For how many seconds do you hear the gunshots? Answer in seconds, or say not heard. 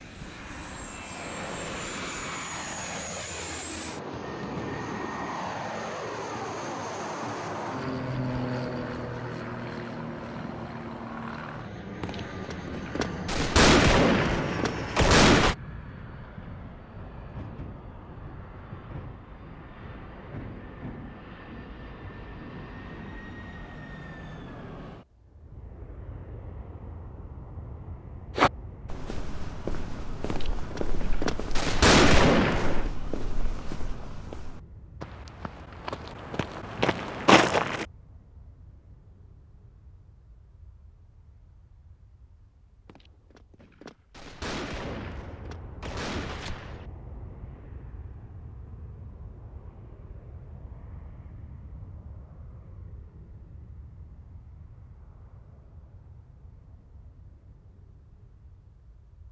10 s.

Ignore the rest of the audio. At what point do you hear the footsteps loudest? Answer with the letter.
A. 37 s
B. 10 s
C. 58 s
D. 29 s
A.